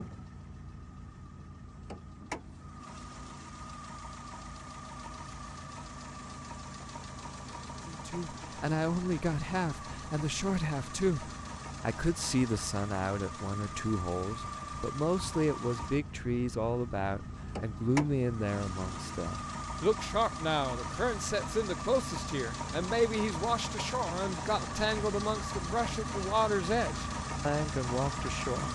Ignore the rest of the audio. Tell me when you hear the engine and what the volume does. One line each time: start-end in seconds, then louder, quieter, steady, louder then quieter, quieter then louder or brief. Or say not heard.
0.0-28.7 louder.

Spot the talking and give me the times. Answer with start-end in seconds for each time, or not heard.
7.8-28.7.